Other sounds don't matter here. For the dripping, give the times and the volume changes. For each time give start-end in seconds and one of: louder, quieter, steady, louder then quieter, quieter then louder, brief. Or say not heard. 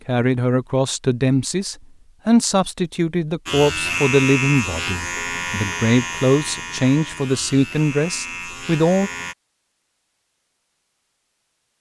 not heard.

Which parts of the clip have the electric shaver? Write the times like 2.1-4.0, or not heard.
3.5-9.3.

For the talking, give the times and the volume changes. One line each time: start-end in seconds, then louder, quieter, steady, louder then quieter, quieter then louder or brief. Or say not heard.
0.1-9.1 steady.